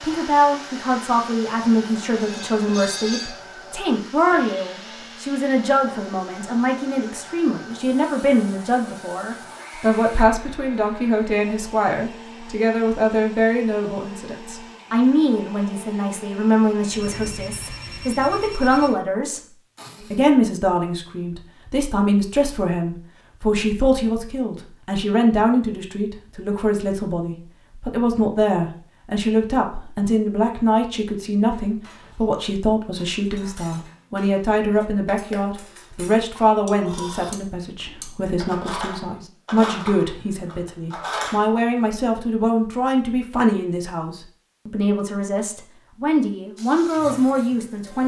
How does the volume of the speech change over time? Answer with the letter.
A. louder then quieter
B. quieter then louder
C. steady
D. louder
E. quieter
C.